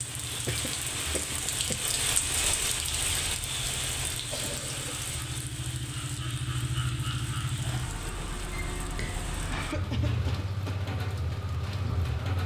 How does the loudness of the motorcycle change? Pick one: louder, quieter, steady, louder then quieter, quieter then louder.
louder.